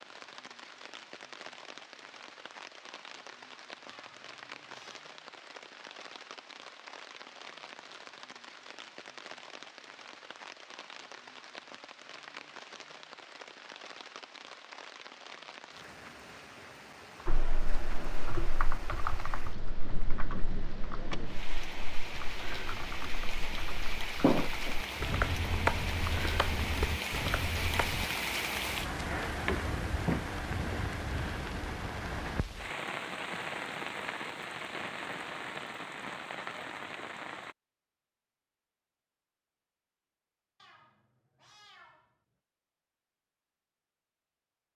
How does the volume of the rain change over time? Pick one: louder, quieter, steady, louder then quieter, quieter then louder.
louder.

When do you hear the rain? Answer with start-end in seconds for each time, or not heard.
0.0-37.5.